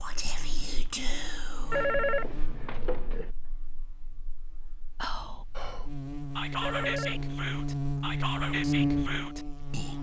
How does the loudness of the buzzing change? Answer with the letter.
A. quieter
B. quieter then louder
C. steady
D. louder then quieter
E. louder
B.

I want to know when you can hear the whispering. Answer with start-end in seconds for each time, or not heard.
0.0-1.9, 5.0-9.9.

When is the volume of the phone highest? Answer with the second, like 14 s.
2 s.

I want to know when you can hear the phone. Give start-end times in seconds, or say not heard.
1.7-3.3, 6.6-7.4.